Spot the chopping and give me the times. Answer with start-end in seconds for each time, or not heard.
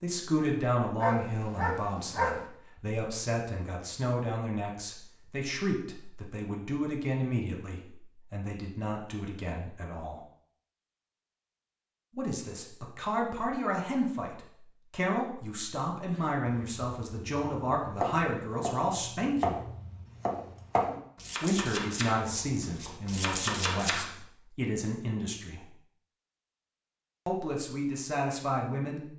16.1-24.1.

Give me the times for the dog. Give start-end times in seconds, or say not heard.
1.0-2.5.